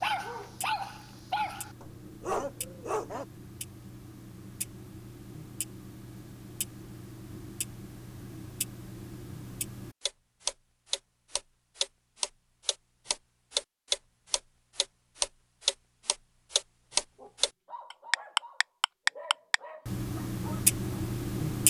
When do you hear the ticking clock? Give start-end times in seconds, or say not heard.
0.0-21.6.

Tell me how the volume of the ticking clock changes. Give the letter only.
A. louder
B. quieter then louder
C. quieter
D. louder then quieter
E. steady
A.